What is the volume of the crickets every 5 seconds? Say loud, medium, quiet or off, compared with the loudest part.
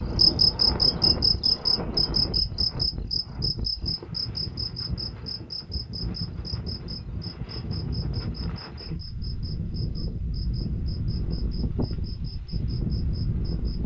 loud, quiet, quiet.